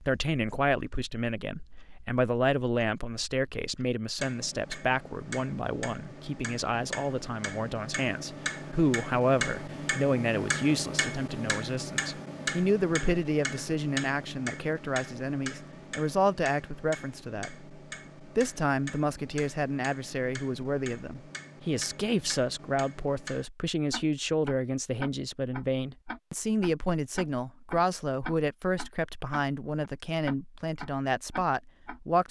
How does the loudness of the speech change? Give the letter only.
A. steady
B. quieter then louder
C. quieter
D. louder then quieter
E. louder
A.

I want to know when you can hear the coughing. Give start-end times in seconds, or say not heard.
not heard.